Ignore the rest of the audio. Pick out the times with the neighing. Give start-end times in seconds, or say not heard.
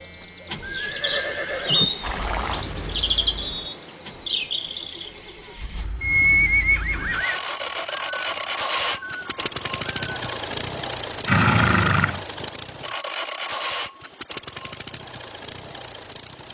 0.6-2.6, 6.0-7.4, 11.2-12.2.